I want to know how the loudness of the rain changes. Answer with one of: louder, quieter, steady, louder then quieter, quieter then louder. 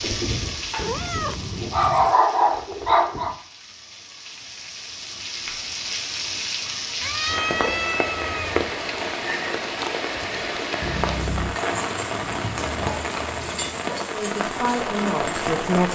louder.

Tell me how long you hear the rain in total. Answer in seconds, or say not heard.
16 s.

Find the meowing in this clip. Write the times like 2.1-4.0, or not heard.
0.8-2.1, 7.0-8.7, 10.8-11.6.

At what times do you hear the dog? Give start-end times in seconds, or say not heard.
0.0-3.4, 12.4-14.1.